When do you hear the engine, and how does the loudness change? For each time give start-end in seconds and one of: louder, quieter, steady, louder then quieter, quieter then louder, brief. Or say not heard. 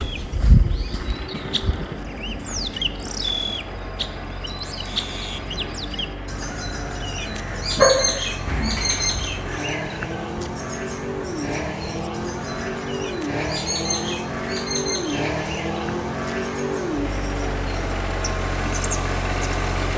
0.0-19.9 louder.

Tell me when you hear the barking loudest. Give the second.
8 s.